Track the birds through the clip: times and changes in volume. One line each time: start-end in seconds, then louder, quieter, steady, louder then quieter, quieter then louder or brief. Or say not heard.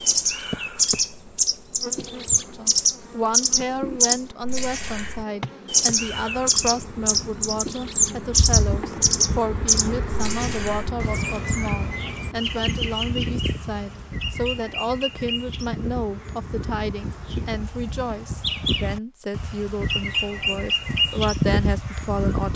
0.0-22.5 quieter then louder.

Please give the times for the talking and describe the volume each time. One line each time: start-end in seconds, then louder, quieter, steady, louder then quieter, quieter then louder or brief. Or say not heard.
2.5-22.5 steady.